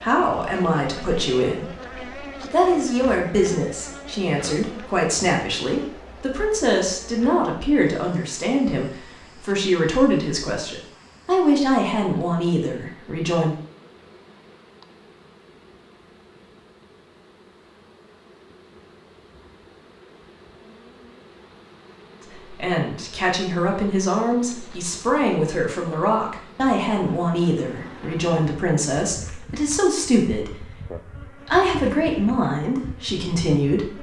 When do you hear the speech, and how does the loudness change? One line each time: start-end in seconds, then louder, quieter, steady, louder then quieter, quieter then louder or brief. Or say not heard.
0.0-13.6 steady
22.2-33.9 steady.